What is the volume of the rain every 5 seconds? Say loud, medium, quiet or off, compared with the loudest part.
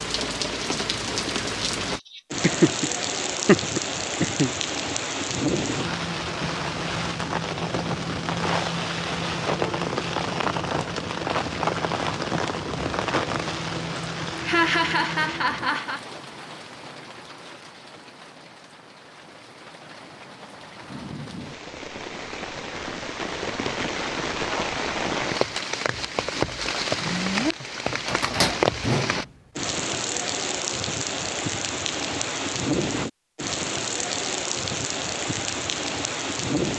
loud, loud, loud, quiet, medium, loud, loud, loud.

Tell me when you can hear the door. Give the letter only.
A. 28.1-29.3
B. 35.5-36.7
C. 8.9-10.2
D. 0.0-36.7
A.